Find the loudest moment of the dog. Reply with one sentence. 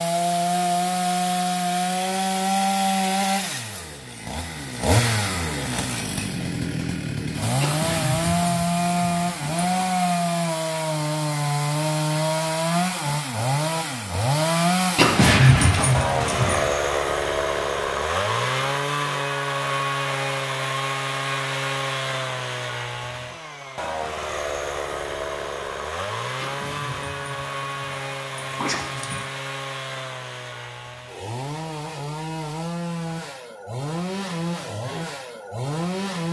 The loudest moment of the dog is at 15 seconds.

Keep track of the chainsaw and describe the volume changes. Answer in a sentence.
The volume of the chainsaw goes down.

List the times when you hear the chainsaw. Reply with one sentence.
The chainsaw can be heard from 0.0 to 36.2 s.